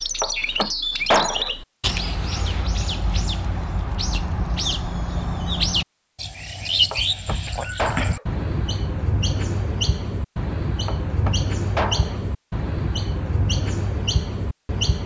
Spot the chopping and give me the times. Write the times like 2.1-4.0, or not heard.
0.2-1.6, 6.9-8.2, 10.8-12.2.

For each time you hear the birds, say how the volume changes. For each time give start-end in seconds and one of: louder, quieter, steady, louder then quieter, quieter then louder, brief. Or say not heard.
0.0-15.0 steady.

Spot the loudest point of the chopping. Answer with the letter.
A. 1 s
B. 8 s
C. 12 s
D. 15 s
A.